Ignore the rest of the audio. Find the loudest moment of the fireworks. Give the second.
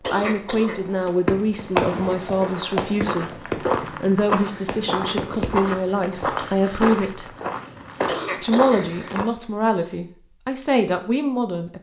2 s.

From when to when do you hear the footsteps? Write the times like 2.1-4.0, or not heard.
1.6-9.2.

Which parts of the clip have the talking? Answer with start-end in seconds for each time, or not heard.
0.1-7.3, 8.4-11.7.